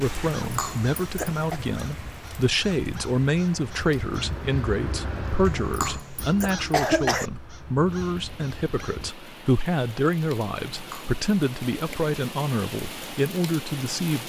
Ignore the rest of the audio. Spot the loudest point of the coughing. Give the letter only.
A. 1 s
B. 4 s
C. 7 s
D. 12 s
C.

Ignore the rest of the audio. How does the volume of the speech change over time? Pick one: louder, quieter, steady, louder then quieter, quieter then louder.
steady.